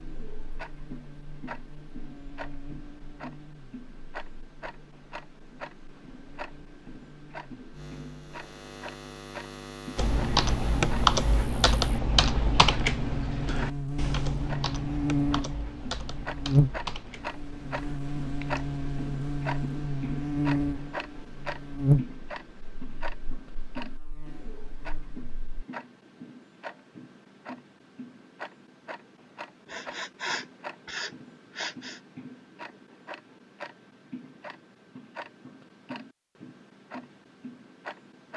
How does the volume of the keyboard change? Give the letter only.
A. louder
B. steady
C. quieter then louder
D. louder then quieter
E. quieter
E.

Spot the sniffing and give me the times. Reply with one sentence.
The sniffing can be heard from 29.6 to 32.0 s.